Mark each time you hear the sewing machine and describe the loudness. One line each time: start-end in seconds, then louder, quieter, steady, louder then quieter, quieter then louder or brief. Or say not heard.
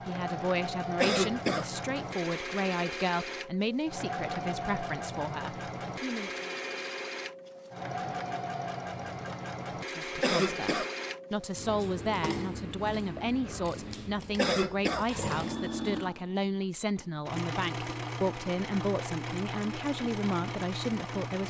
0.0-21.4 steady.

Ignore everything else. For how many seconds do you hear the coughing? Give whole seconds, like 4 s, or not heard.
2 s.